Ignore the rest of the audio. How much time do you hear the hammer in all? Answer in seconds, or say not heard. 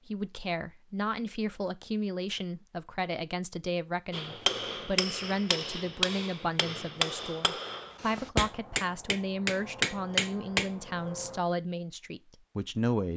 7 s.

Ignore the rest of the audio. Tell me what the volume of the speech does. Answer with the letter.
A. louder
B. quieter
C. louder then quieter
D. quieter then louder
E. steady
E.